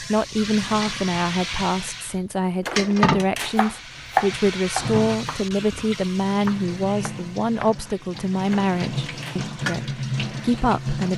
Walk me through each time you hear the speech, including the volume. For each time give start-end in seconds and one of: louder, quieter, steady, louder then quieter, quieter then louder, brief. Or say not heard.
0.0-11.1 steady.